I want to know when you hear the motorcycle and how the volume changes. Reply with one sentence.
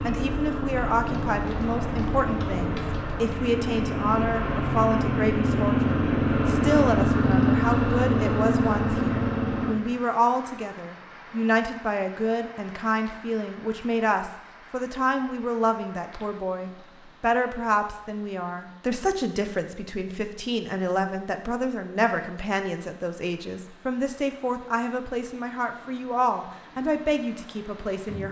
The motorcycle can be heard from 0.0 to 9.8 s, getting louder.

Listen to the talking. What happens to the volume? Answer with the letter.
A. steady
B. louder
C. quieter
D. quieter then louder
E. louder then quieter
A.